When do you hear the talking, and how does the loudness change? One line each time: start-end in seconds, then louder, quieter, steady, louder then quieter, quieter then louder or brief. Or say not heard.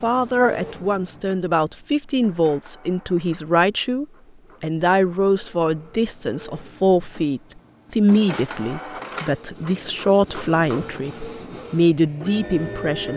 0.0-13.1 steady.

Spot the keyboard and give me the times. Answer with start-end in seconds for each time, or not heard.
not heard.